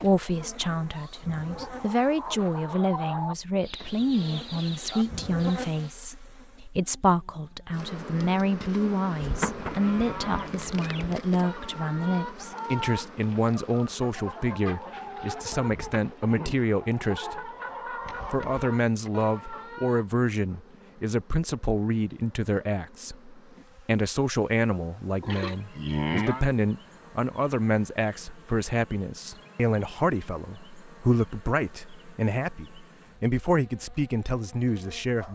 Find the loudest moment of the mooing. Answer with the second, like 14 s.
26 s.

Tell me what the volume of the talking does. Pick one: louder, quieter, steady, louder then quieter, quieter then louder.
steady.